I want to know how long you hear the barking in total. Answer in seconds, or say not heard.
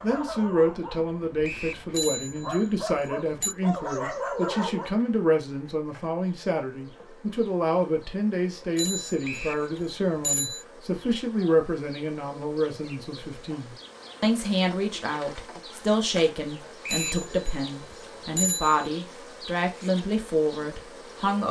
5 s.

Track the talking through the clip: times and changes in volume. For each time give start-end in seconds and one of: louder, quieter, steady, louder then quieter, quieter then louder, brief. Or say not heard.
0.0-21.4 steady.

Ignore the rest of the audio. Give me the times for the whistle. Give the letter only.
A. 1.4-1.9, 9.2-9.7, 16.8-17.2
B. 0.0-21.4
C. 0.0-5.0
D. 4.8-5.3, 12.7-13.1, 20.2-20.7
A.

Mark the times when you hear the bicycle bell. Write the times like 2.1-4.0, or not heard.
1.9-3.5, 8.8-10.7, 16.9-18.9.